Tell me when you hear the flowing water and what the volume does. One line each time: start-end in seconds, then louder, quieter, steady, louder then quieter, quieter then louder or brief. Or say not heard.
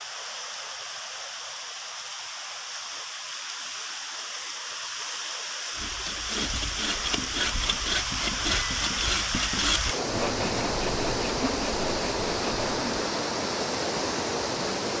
0.0-14.9 louder.